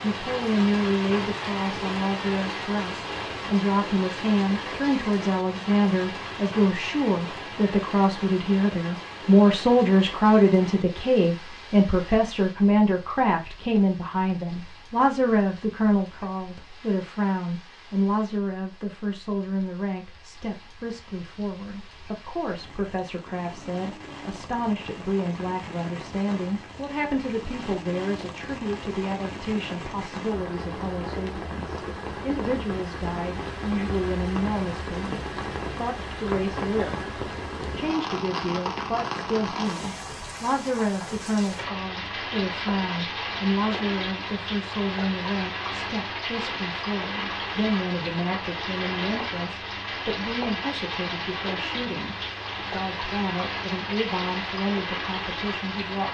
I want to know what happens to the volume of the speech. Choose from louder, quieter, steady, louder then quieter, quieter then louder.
quieter.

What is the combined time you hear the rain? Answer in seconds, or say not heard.
56 s.